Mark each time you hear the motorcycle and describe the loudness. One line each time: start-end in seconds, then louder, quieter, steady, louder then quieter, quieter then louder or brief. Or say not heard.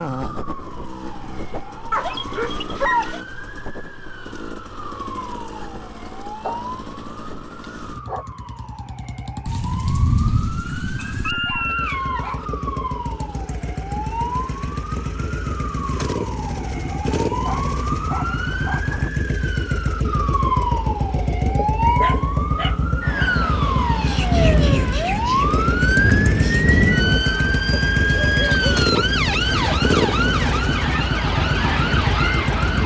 0.0-32.8 louder.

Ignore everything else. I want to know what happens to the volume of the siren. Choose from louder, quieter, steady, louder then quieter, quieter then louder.
louder.